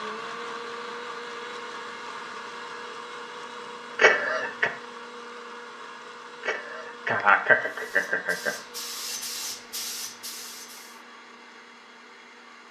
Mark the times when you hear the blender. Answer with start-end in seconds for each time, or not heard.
0.0-12.6.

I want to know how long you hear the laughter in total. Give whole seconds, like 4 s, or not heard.
3 s.